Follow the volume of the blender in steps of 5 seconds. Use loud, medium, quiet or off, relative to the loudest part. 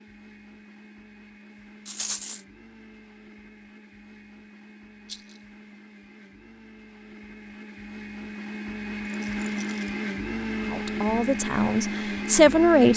quiet, medium, loud.